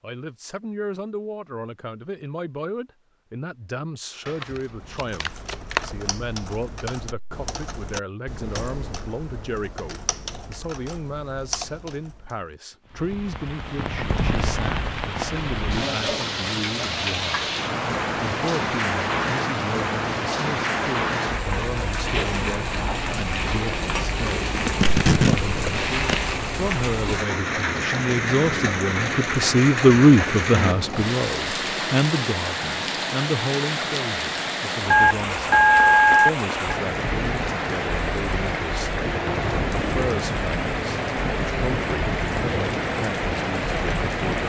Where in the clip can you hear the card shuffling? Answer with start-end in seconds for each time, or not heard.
4.2-5.8, 24.5-26.2.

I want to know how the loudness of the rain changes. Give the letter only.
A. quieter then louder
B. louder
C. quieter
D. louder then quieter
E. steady
E.